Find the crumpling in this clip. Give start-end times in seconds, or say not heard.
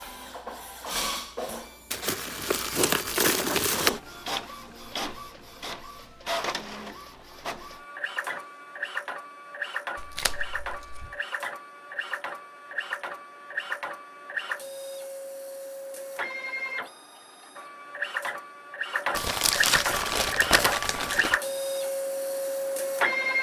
1.9-3.9, 9.9-11.1, 19.1-21.4.